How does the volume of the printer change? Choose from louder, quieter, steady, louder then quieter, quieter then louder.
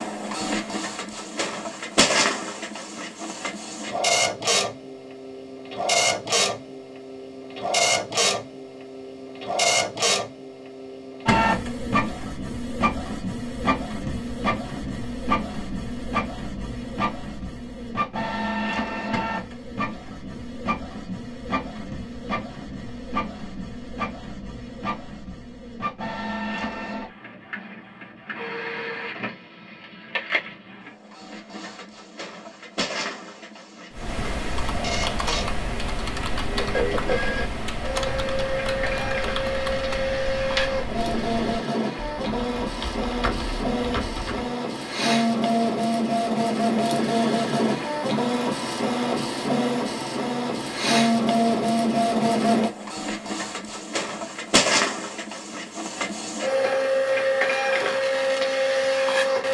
quieter then louder.